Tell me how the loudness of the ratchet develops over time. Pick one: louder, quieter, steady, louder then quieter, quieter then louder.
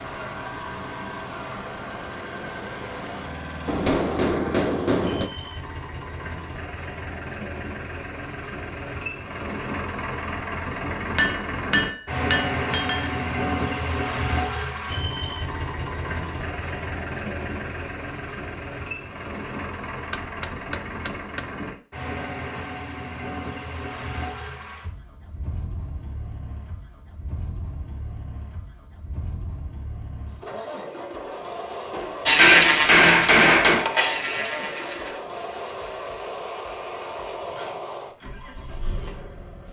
quieter.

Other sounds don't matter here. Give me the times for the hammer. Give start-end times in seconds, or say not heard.
3.6-5.3, 11.2-13.1, 20.1-21.4, 31.9-33.9.